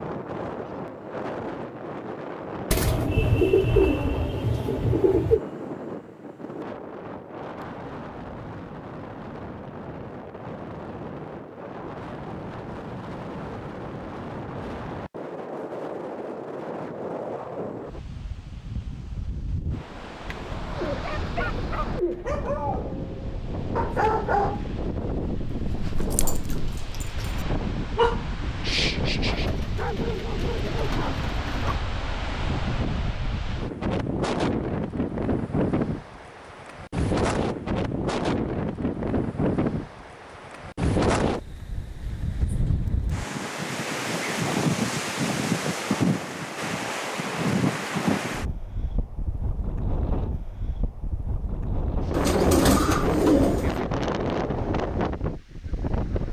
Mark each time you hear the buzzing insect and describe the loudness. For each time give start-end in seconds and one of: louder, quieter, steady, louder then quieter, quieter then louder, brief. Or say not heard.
not heard.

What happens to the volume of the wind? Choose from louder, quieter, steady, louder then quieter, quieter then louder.
louder.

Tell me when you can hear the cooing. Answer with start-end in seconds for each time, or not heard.
2.7-5.4, 20.2-22.4, 29.3-31.8, 52.1-53.8.